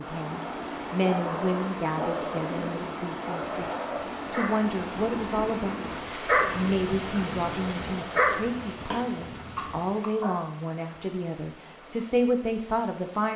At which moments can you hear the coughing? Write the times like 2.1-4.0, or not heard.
8.9-10.1.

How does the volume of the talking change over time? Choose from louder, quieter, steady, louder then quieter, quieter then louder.
steady.